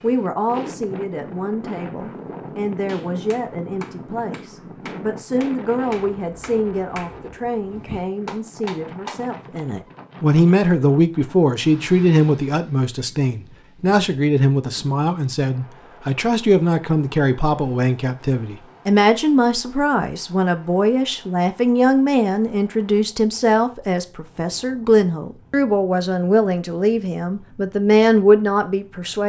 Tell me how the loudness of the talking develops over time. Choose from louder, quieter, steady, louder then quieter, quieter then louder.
louder.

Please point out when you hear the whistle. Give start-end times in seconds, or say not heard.
not heard.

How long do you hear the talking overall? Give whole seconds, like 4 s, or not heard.
29 s.